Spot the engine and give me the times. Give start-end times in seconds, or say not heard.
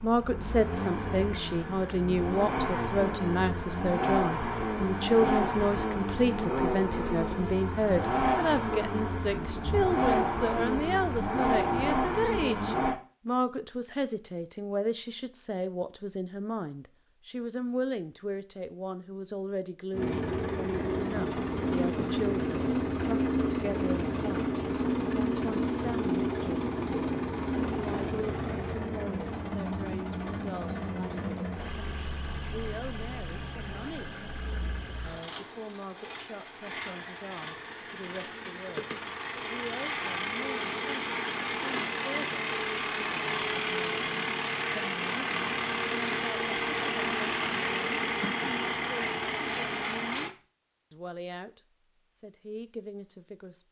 0.0-13.0, 19.9-50.3.